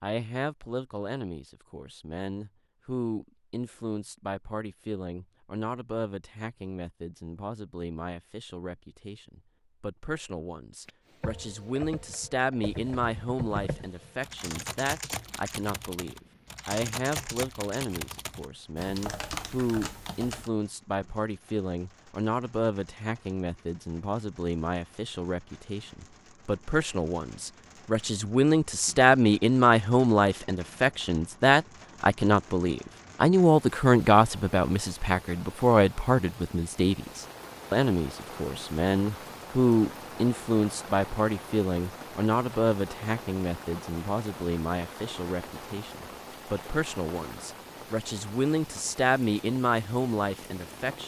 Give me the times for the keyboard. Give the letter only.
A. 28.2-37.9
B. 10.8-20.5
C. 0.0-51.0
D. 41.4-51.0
B.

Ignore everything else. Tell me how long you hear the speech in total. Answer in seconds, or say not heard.
51 s.